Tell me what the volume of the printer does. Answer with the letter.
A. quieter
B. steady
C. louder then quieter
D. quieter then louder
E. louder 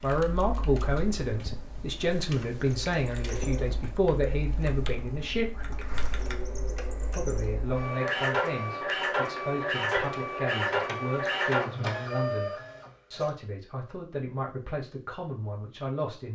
E.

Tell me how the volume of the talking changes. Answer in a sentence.
The loudness of the talking goes down.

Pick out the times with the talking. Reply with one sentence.
You can hear the talking from 0.0 to 5.9 s and from 7.0 to 16.2 s.